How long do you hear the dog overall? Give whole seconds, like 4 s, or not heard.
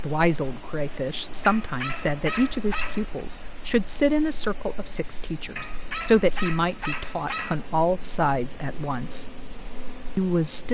4 s.